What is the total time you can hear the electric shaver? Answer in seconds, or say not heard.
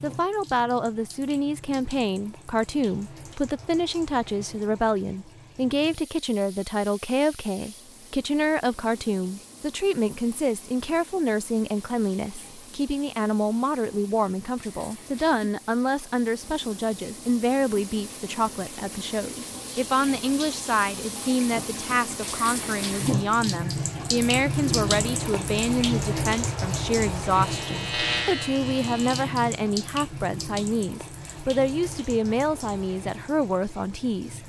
2 s.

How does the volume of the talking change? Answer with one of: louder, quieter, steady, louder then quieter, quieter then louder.
steady.